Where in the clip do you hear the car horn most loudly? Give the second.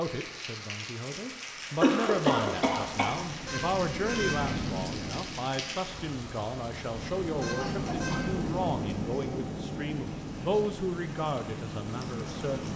4 s.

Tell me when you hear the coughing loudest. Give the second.
2 s.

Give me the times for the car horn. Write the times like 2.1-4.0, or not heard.
3.5-4.4, 7.4-8.2.